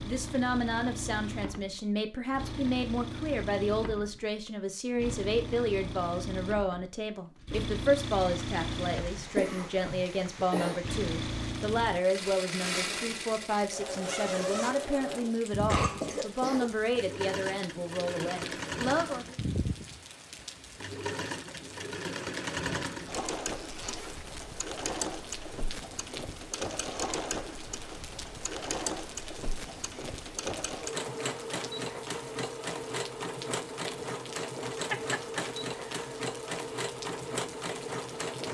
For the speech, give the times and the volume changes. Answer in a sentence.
The speech can be heard from 0.0 to 19.4 s, at a steady volume.